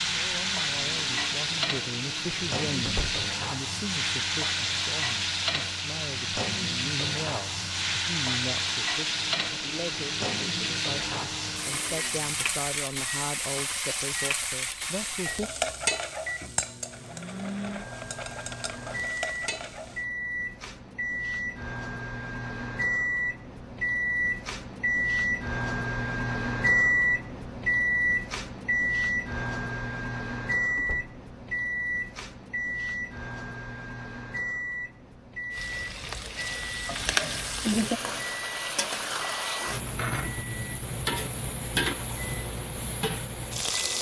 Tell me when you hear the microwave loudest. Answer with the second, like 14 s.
27 s.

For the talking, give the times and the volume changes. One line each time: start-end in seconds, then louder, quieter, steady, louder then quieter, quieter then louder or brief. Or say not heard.
0.1-15.5 steady.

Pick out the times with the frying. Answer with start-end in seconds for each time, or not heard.
0.0-20.1, 35.5-43.9.